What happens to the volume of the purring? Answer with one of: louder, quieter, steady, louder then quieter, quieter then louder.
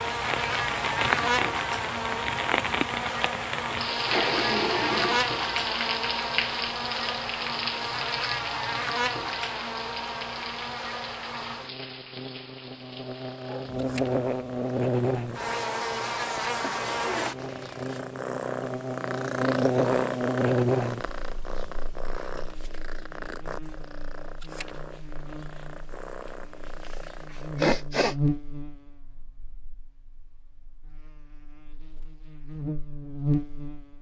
louder then quieter.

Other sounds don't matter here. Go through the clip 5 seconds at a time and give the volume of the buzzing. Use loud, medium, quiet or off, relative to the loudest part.
loud, loud, loud, loud, loud, medium, medium.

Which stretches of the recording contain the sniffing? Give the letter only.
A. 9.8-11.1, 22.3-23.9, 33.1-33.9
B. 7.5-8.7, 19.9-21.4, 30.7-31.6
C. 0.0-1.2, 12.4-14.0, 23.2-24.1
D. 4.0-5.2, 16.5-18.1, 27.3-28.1
D.